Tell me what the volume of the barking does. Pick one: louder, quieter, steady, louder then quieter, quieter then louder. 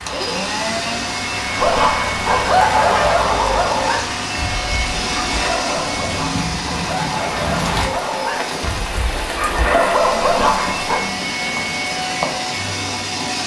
quieter then louder.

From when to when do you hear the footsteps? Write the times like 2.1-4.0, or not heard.
not heard.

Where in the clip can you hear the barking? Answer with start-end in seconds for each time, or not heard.
1.6-11.0.